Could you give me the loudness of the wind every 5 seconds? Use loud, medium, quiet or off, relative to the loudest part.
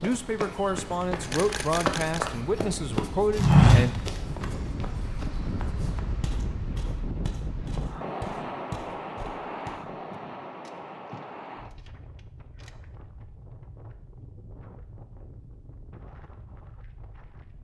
loud, loud, medium, quiet.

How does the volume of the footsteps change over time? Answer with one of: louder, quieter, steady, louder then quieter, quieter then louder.
louder then quieter.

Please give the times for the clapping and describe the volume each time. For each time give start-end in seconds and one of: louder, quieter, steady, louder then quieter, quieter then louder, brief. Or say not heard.
not heard.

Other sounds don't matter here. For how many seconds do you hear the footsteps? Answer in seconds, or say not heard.
10 s.